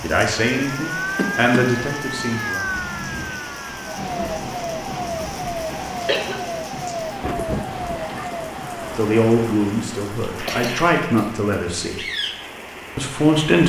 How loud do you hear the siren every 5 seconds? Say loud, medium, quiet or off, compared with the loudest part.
loud, loud, off.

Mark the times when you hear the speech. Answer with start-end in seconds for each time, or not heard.
0.0-2.6, 8.9-12.0, 12.9-13.6.